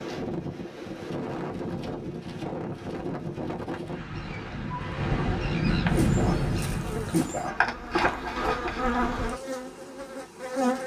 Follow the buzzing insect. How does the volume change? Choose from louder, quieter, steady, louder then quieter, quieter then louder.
louder then quieter.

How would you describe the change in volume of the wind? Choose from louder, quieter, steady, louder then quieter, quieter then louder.
louder.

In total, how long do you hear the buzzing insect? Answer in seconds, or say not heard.
5 s.